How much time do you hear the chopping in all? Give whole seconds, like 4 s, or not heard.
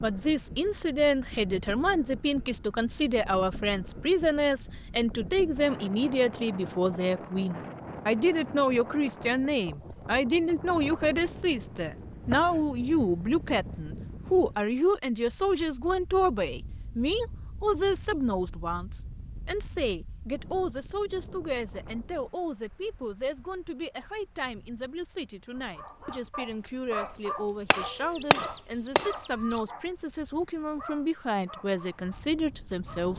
4 s.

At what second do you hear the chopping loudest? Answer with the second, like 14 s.
28 s.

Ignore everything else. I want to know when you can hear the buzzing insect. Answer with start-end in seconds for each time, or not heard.
not heard.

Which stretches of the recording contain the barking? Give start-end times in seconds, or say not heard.
25.6-33.1.